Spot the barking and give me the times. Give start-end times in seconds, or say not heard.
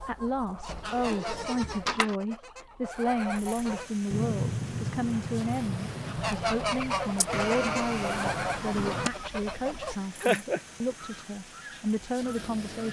not heard.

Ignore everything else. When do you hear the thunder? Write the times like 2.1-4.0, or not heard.
4.1-7.8.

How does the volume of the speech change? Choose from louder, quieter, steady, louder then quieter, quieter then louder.
steady.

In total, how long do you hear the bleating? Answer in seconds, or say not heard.
3 s.